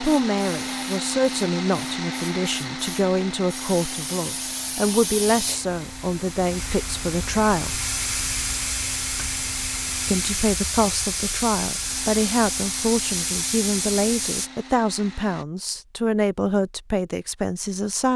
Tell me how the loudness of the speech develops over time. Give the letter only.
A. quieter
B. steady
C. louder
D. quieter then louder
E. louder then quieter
B.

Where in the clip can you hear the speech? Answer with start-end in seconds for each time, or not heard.
0.0-7.8, 10.1-18.1.